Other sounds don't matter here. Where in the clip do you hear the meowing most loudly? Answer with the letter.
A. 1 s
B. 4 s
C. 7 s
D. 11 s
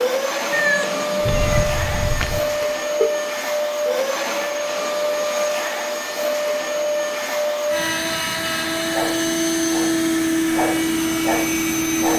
A.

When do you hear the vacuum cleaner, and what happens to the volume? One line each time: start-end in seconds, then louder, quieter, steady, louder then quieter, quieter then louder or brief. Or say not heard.
0.0-12.1 steady.